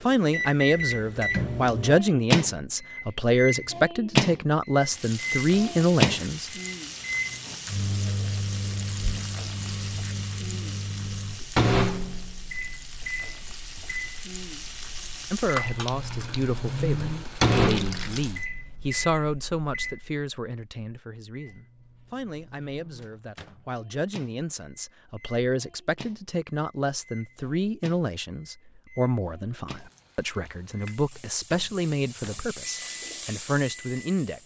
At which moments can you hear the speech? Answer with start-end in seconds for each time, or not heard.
0.0-6.5, 15.3-34.4.